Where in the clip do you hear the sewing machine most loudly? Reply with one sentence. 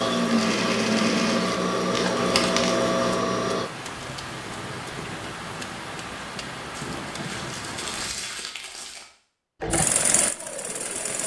The volume of the sewing machine peaks at 1 second.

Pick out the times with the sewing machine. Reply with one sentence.
The sewing machine can be heard from 0.0 to 3.7 s and from 9.6 to 11.2 s.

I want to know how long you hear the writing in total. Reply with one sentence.
The writing can't be heard in this clip.